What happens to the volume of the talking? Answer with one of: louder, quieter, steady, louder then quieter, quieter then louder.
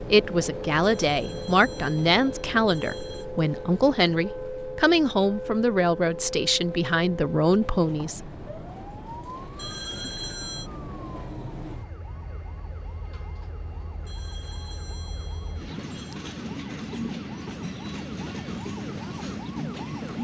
steady.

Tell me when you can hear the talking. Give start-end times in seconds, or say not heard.
0.0-8.3.